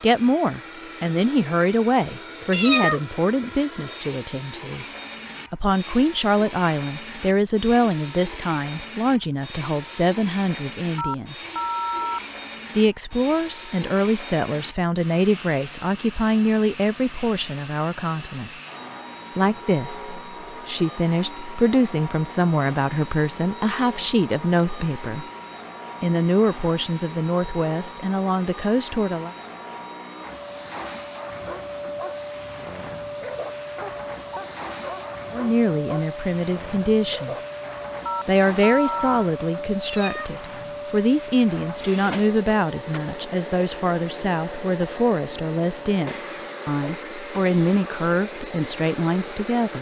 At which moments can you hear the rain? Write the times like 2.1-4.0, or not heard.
not heard.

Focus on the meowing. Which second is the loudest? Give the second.
3 s.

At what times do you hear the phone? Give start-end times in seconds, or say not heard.
10.9-12.2, 38.0-39.3.